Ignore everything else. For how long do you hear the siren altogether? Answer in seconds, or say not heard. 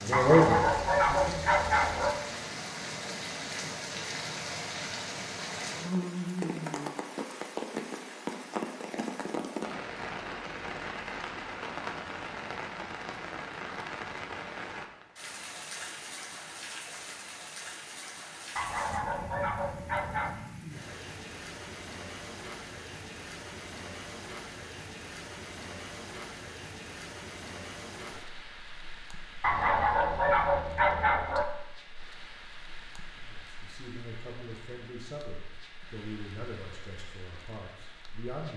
not heard.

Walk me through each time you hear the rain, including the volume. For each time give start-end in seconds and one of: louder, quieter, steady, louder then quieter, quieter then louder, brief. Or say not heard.
0.0-38.5 quieter.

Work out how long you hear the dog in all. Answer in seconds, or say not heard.
6 s.